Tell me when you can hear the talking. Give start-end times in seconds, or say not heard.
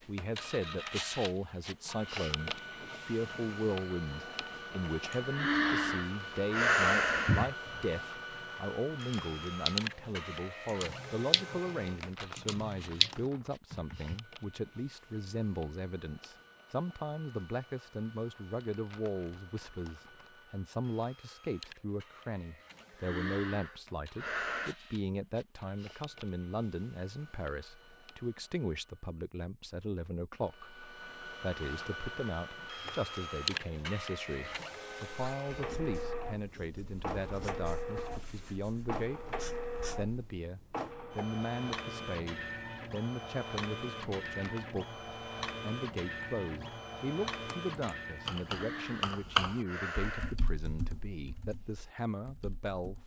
0.1-39.2, 40.0-53.0.